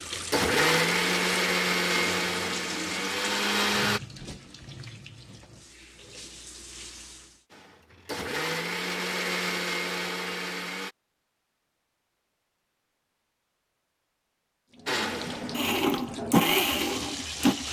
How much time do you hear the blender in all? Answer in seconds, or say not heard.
10 s.